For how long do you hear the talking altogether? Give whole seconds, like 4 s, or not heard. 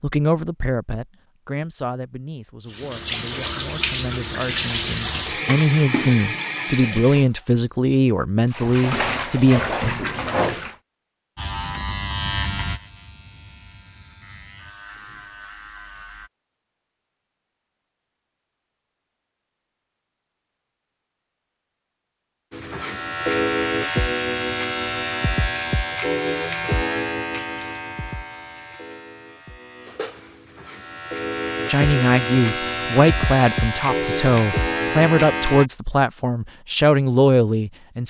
16 s.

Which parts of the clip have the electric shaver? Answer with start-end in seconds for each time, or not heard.
11.3-16.3, 22.5-35.7.